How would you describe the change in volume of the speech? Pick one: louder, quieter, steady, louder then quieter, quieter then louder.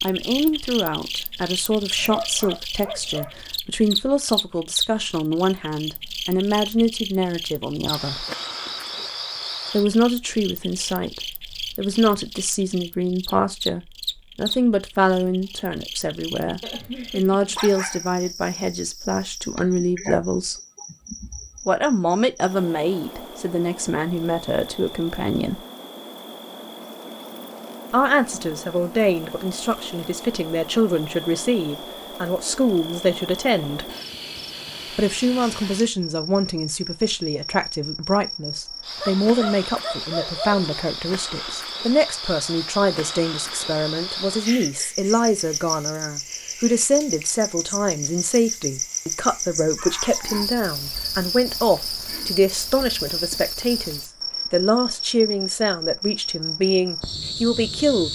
steady.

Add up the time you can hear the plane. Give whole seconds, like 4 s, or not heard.
not heard.